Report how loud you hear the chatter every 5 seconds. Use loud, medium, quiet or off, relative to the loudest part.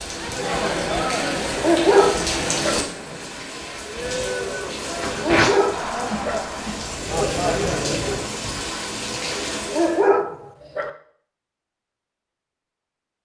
loud, loud, off.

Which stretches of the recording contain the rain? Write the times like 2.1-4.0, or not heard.
0.0-10.1.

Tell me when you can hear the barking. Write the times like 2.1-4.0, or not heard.
1.6-2.8, 5.2-6.4, 9.7-10.9.